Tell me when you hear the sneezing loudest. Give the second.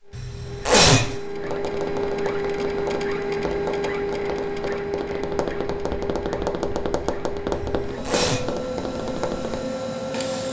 1 s.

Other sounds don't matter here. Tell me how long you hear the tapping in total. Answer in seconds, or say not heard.
8 s.